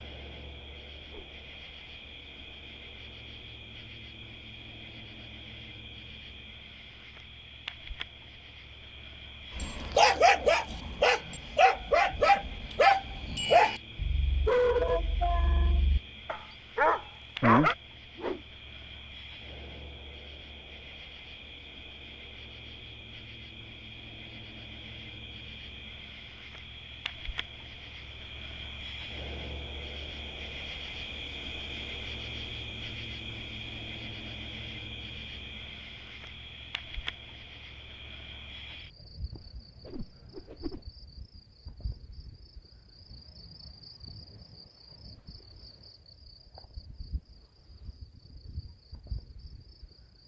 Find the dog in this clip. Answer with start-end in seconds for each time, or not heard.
9.6-17.8.